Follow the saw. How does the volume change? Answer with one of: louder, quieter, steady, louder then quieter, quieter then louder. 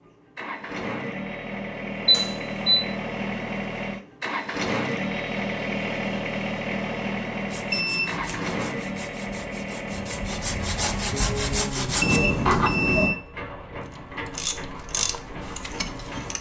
louder.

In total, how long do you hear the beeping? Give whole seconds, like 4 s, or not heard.
3 s.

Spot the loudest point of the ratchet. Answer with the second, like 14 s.
15 s.